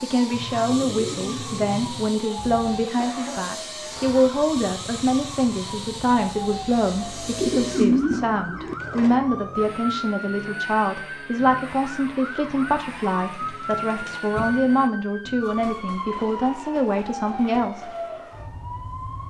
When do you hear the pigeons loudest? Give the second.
8 s.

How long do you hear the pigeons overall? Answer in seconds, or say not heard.
5 s.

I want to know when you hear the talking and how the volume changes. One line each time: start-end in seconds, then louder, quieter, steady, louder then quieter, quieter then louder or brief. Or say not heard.
0.0-17.9 steady.